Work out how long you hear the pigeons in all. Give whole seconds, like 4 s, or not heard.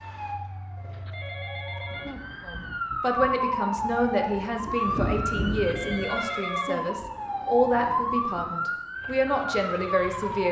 not heard.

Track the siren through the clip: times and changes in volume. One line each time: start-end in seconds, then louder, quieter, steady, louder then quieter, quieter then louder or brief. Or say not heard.
0.0-10.4 louder.